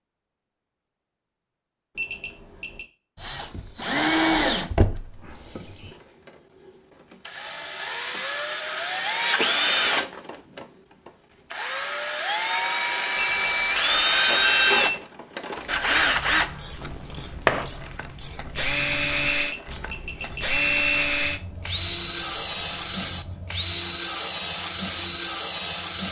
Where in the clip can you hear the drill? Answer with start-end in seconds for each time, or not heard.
3.1-6.0, 7.2-26.0.